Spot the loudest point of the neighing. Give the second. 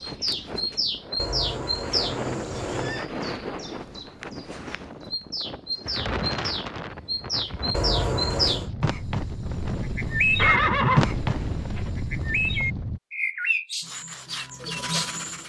11 s.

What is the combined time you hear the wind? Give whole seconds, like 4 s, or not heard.
13 s.